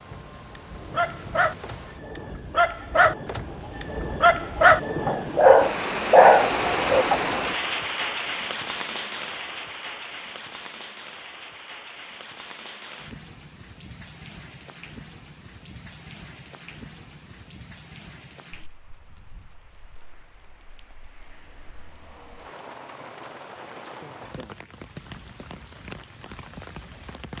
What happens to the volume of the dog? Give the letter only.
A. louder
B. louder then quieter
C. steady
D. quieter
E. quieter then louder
A.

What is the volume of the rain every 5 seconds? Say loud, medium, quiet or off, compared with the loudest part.
medium, loud, quiet, quiet, quiet, quiet.